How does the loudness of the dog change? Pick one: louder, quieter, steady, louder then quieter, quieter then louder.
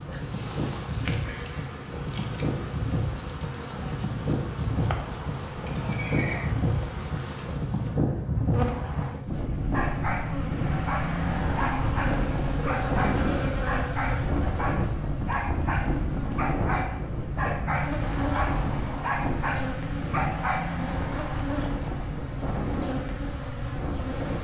steady.